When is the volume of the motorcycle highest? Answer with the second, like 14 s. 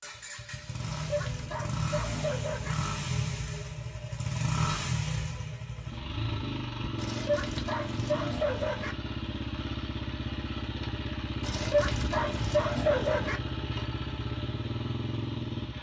5 s.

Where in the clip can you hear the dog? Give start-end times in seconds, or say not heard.
0.8-2.8, 7.0-8.9, 11.4-13.4.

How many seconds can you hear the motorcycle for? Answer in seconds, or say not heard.
16 s.